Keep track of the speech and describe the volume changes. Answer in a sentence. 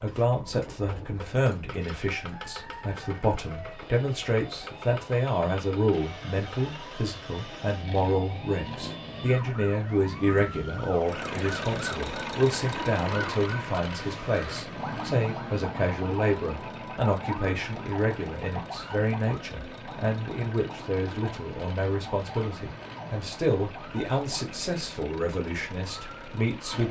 The volume of the speech stays about the same.